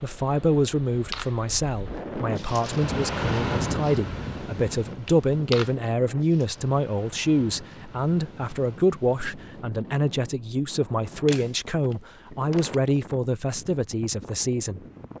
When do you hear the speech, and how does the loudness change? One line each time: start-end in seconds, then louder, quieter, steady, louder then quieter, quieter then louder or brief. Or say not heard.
0.0-14.8 steady.